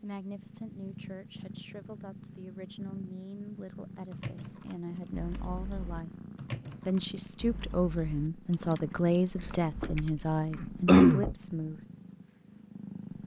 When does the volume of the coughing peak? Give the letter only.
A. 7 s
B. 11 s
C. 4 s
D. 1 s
B.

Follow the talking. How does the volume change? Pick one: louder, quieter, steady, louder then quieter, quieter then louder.
louder.